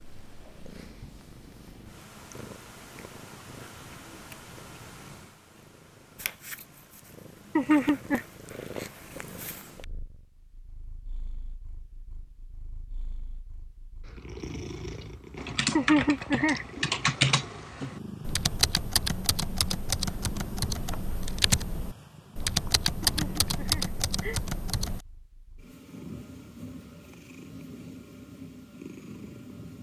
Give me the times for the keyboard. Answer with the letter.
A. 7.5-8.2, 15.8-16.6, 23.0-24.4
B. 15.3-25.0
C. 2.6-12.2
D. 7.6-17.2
B.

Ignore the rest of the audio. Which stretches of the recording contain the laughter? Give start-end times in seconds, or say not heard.
7.5-8.2, 15.8-16.6, 23.0-24.4.